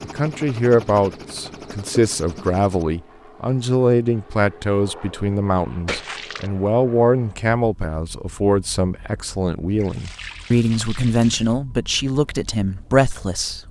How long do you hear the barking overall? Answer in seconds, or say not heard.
not heard.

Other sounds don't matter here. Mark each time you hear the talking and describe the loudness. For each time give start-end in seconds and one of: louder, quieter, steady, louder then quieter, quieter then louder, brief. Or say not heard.
0.0-13.6 steady.